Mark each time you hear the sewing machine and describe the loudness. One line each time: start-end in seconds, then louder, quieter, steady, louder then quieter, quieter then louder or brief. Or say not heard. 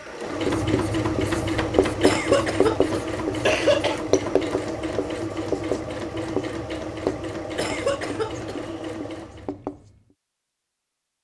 0.0-9.6 quieter.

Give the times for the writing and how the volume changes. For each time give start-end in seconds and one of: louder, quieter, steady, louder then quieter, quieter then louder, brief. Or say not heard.
0.3-10.0 quieter.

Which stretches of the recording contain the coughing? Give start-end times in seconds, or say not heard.
2.0-4.0, 7.5-8.6.